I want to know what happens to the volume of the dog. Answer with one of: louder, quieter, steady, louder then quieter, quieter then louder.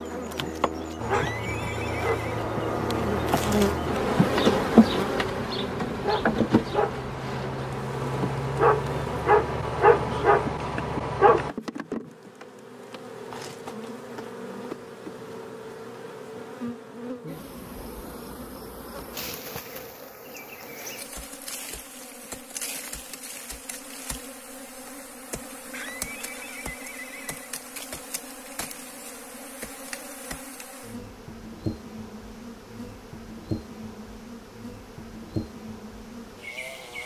quieter then louder.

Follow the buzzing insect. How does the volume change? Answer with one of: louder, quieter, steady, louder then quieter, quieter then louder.
quieter.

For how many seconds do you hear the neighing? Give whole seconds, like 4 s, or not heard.
3 s.